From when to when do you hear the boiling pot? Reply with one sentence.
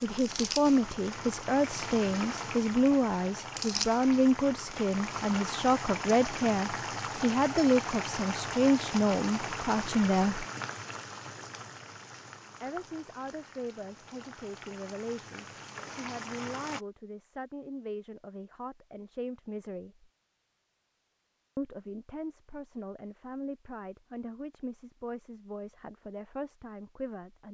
You can hear the boiling pot from 0.0 to 16.8 s.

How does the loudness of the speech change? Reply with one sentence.
The loudness of the speech goes down.